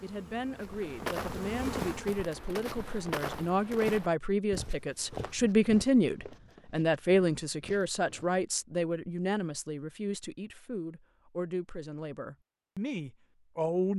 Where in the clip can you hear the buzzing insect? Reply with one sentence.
You can hear the buzzing insect from 0.0 to 2.2 s.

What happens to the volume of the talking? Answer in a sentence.
The loudness of the talking goes up, then down.